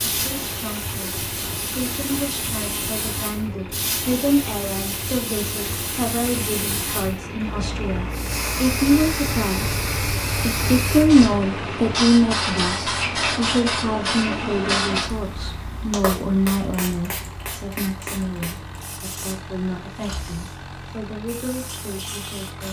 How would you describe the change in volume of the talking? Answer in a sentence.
The volume of the talking goes up, then down.